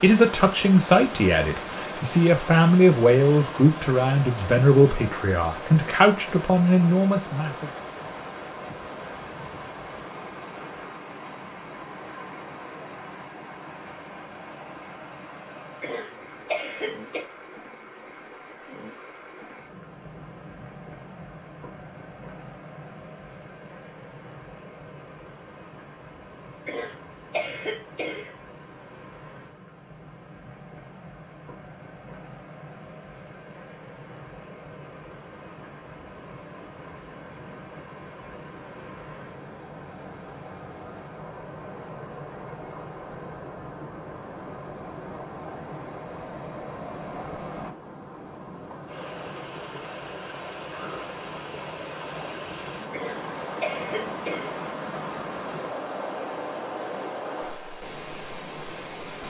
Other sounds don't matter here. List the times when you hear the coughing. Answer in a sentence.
You can hear the coughing from 15.8 to 17.2 s, from 26.6 to 28.4 s and from 52.9 to 54.5 s.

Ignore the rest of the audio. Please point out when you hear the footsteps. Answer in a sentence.
You can't hear the footsteps here.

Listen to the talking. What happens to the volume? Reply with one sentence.
The loudness of the talking stays about the same.